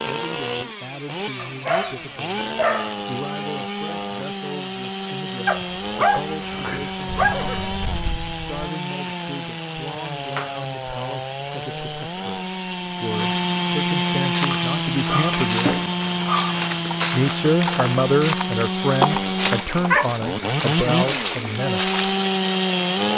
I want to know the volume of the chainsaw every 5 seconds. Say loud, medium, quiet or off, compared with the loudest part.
medium, medium, loud, loud, loud.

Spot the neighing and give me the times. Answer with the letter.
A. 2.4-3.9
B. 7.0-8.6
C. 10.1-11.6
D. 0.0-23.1
B.